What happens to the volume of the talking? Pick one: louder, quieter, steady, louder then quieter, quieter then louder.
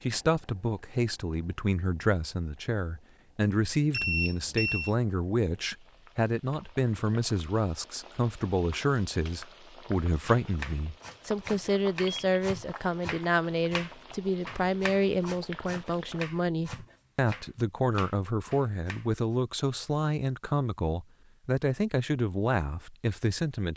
steady.